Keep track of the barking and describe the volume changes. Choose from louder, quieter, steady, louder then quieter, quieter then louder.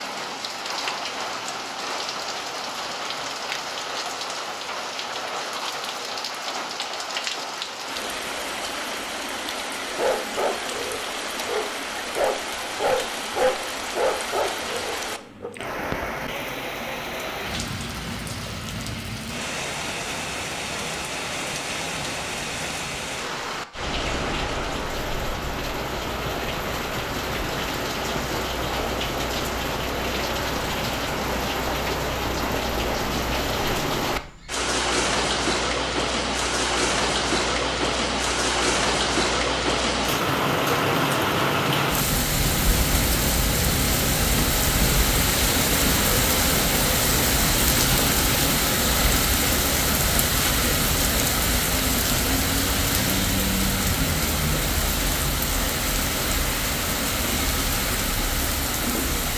louder then quieter.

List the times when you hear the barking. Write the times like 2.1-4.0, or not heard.
9.9-15.5.